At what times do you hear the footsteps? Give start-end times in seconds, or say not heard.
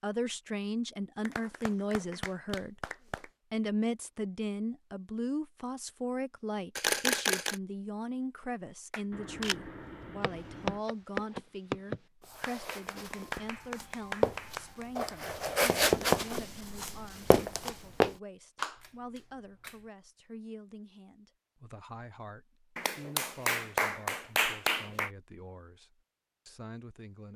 10.2-18.1.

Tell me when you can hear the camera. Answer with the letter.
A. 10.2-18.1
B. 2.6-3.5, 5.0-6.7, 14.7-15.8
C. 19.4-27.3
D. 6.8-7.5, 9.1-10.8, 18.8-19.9
D.